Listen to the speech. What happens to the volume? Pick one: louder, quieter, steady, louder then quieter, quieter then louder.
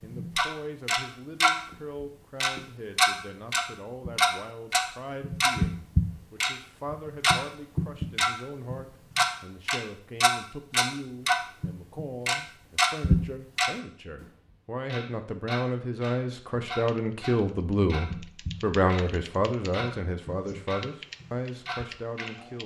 louder.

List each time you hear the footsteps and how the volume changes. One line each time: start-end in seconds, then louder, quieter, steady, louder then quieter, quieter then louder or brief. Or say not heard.
not heard.